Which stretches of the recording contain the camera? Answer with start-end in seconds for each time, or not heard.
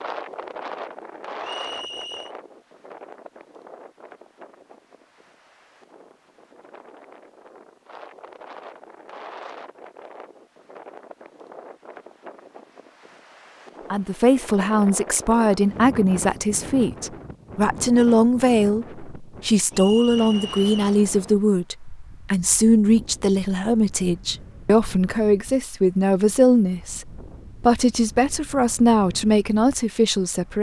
not heard.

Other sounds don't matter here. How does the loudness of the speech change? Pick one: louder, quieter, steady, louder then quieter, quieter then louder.
steady.